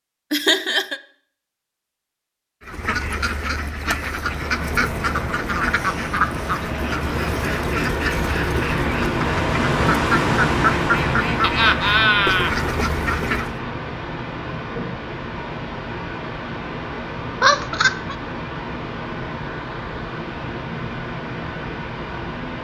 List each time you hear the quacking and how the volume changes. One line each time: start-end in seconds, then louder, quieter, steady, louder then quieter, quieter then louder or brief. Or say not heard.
2.6-13.6 steady.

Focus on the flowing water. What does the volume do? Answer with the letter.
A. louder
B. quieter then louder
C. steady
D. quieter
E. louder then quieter
E.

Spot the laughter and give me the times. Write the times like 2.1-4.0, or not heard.
0.3-1.0, 11.4-12.6, 17.4-18.1.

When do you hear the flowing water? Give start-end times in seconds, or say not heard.
4.1-22.5.